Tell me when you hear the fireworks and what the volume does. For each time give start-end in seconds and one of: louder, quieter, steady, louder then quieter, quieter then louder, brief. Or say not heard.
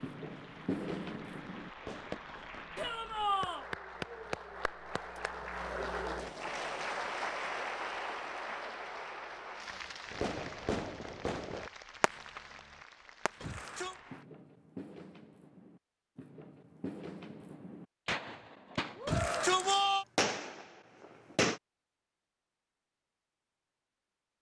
0.0-3.0 brief
10.1-21.6 quieter then louder.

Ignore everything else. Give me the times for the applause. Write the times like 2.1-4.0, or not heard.
0.0-14.2.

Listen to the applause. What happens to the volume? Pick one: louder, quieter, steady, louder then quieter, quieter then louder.
louder then quieter.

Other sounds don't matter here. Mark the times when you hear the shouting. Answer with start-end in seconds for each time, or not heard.
2.8-3.6, 13.4-13.9, 19.1-20.1.